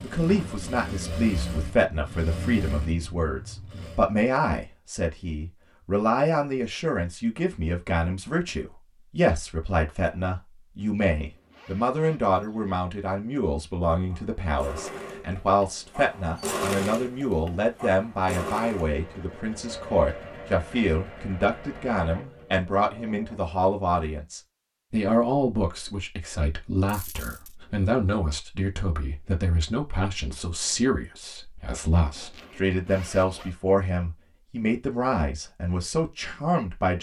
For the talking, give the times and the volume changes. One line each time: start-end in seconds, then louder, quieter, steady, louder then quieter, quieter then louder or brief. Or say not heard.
0.0-36.9 steady.